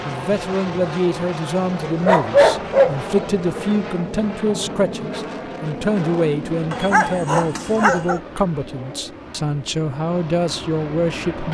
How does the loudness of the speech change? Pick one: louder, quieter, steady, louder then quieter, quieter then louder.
steady.